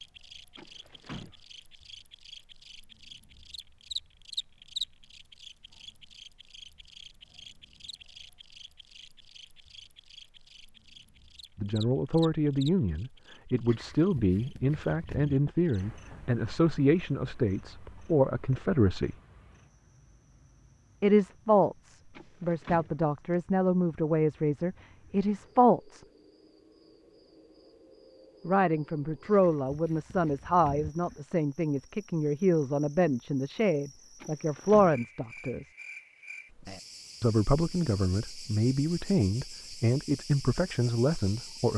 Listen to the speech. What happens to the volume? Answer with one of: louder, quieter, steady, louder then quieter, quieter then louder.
steady.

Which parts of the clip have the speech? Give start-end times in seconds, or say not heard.
11.6-19.1, 21.0-26.1, 28.4-35.7, 37.2-41.7.